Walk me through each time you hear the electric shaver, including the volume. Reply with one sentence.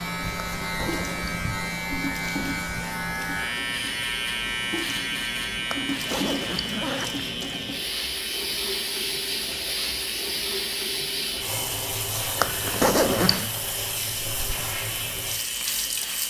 You can hear the electric shaver from 0.0 to 16.2 s, getting quieter.